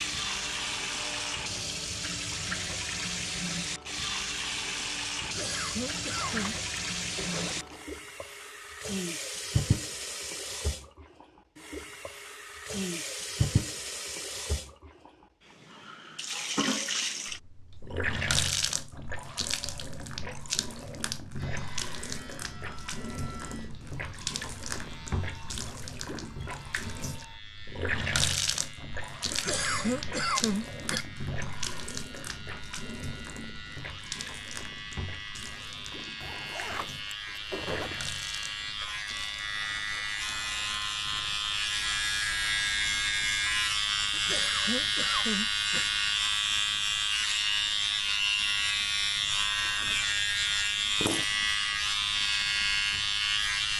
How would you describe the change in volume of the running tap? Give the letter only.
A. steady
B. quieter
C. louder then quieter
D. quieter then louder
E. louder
B.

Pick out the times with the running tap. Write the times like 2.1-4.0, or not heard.
0.0-53.6.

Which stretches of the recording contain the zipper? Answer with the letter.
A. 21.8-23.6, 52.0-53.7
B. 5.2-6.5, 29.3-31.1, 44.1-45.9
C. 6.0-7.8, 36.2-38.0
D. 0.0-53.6
C.